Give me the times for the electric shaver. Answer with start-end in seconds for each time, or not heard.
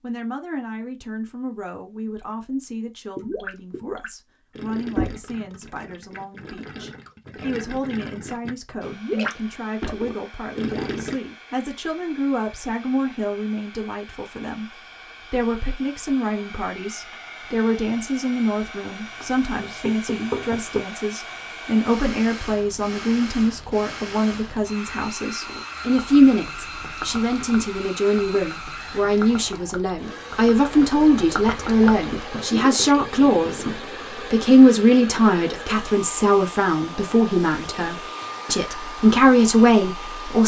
not heard.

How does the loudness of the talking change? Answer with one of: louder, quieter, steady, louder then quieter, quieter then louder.
louder.